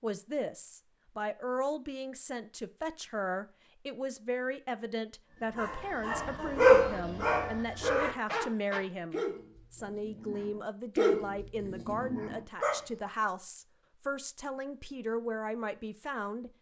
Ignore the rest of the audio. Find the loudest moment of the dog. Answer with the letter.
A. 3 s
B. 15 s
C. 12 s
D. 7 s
D.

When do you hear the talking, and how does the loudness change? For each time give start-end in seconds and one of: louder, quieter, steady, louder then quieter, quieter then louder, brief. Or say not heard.
0.0-16.5 steady.